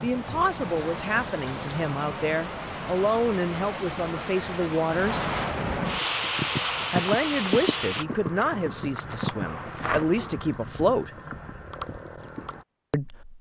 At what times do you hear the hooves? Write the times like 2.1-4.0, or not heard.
6.0-12.7.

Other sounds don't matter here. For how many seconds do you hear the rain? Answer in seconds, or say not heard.
8 s.